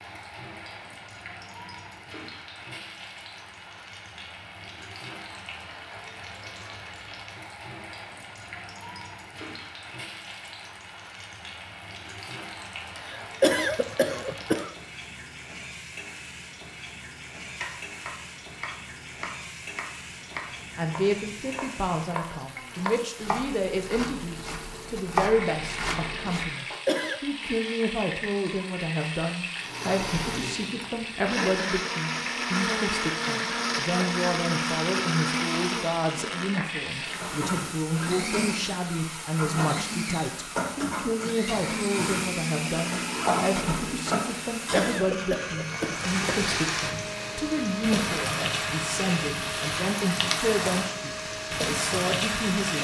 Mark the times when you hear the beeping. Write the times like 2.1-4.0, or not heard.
not heard.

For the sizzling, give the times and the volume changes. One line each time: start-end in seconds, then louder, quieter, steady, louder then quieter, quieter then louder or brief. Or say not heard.
0.0-52.8 louder.